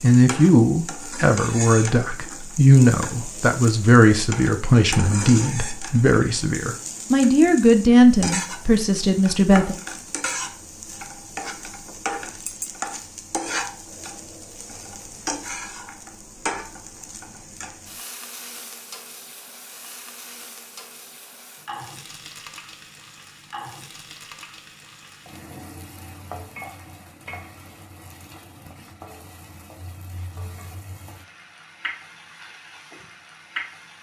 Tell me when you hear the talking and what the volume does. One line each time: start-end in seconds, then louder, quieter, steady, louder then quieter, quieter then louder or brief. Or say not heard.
0.0-9.8 steady.